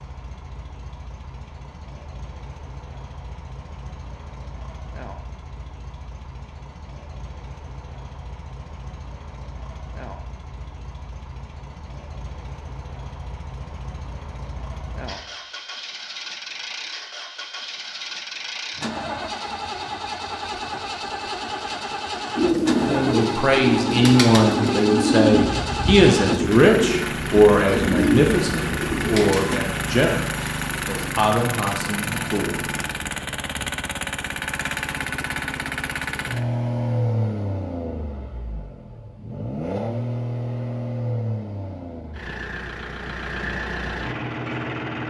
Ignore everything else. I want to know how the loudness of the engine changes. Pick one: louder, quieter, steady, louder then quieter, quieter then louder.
louder.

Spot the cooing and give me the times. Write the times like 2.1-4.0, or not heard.
22.4-29.6.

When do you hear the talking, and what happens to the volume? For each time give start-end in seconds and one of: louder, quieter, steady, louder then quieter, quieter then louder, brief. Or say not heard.
22.9-32.6 quieter.